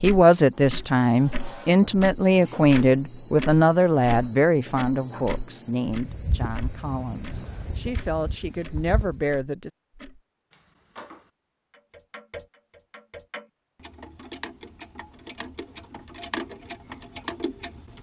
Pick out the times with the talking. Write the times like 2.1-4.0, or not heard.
0.0-9.7.